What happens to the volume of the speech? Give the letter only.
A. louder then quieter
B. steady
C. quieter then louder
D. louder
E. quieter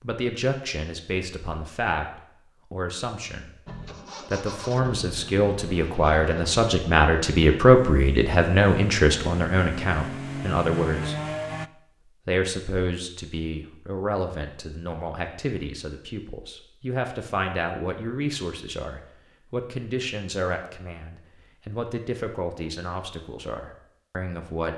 A.